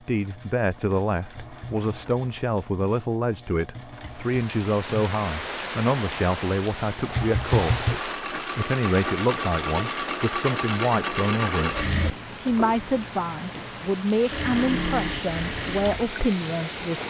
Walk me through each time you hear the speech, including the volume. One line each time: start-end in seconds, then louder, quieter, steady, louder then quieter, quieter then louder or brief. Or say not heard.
0.1-17.0 steady.